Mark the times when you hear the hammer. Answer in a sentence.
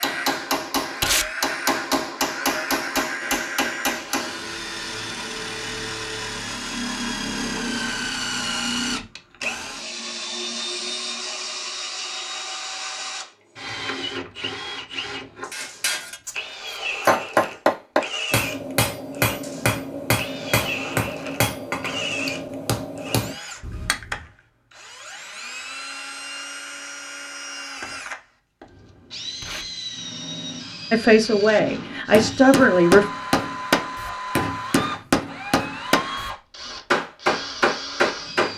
The hammer can be heard from 0.0 to 4.5 s, from 15.5 to 24.2 s, from 32.1 to 36.3 s and from 36.9 to 38.5 s.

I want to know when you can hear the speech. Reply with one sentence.
You can hear the speech from 30.9 to 33.0 s.